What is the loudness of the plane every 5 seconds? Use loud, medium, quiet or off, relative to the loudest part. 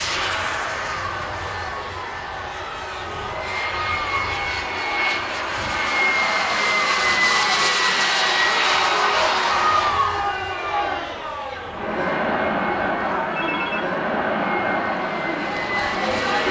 medium, loud, quiet, medium.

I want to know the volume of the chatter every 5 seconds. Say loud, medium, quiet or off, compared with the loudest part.
medium, loud, loud, loud.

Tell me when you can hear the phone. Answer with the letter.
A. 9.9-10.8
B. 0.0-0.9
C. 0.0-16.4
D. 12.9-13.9
D.